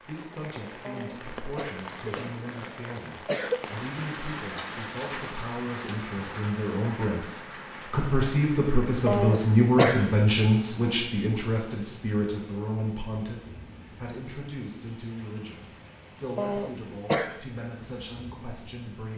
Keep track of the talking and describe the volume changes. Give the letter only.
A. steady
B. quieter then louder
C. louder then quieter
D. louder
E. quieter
C.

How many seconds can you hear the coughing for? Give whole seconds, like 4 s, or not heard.
5 s.